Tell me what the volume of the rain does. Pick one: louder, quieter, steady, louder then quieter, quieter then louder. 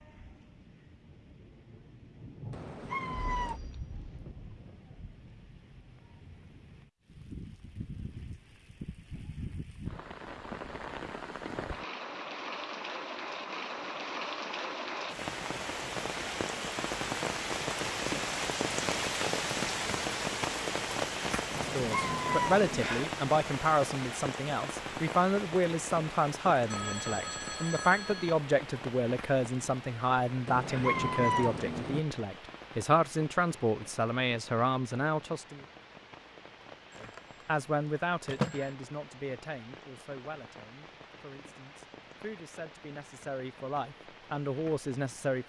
louder then quieter.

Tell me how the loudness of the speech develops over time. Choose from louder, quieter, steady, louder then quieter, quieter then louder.
quieter.